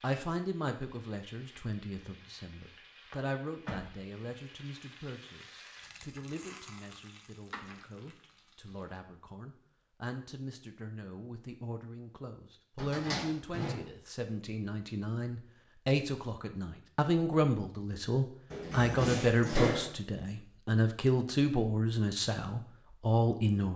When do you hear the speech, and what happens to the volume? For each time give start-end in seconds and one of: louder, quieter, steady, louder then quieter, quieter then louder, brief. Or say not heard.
0.0-23.7 quieter then louder.